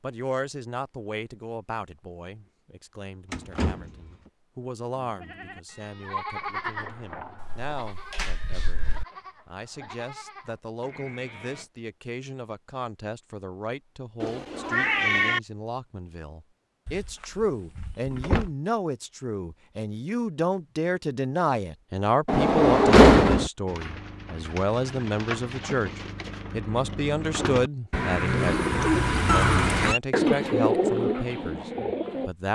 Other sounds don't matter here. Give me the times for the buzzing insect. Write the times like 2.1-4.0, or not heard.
not heard.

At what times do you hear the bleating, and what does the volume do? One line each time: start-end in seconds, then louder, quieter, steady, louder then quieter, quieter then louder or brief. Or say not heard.
5.0-11.7 quieter.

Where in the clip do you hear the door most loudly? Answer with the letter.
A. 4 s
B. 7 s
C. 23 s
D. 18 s
C.